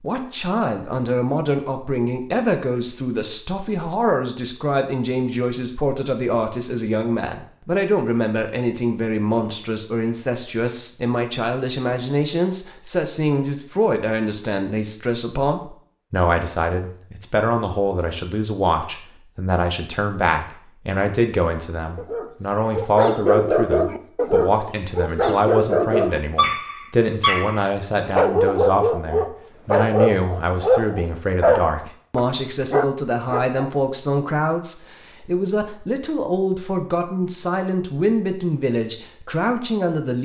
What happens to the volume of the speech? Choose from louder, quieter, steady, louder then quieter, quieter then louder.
steady.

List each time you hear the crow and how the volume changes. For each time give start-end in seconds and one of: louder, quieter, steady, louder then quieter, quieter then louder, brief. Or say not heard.
not heard.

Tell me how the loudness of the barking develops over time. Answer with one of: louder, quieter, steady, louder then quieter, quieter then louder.
steady.